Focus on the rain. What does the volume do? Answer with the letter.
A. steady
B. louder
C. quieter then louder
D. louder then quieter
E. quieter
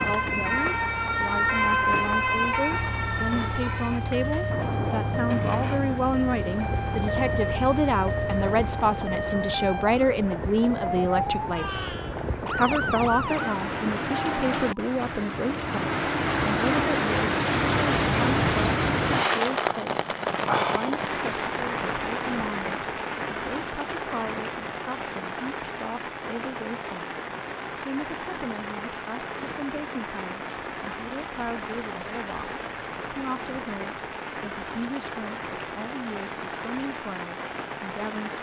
D.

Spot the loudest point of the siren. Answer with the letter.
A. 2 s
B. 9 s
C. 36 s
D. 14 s
A.